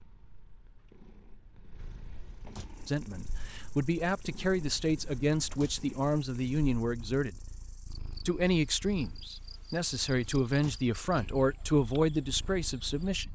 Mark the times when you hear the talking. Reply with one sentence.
You can hear the talking from 2.9 to 7.5 s and from 8.2 to 13.3 s.